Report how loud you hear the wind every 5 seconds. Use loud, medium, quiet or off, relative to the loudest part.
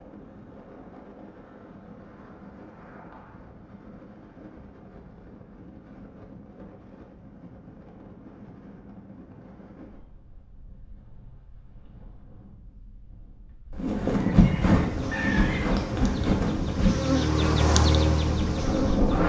quiet, quiet, loud, loud.